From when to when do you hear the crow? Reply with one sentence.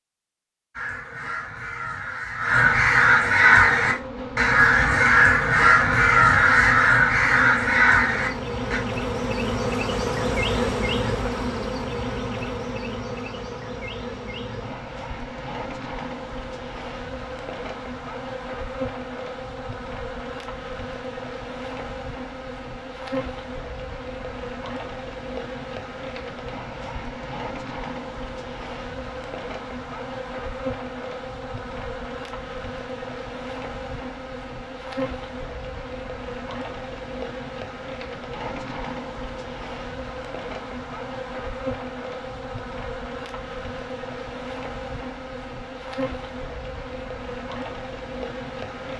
The crow can be heard from 0.8 to 8.8 s.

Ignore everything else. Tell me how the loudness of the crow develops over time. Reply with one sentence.
The volume of the crow goes up.